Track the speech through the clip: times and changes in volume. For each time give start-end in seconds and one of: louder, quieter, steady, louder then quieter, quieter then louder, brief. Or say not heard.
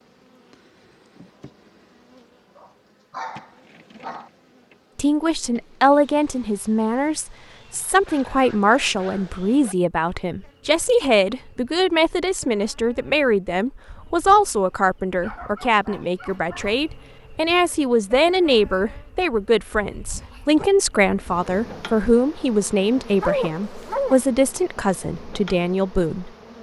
5.0-26.5 steady.